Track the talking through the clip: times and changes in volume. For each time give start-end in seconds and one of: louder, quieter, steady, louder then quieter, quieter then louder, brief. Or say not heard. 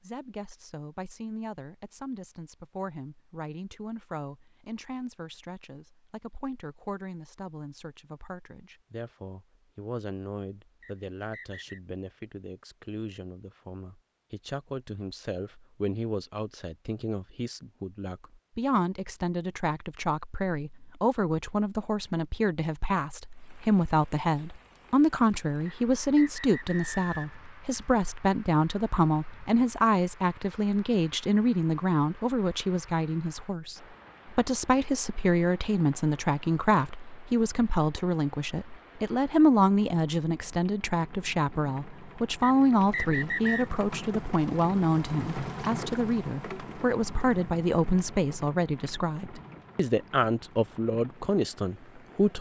0.0-52.3 louder.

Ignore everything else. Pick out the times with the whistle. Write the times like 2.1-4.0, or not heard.
10.8-11.8, 25.6-27.4, 42.4-43.6.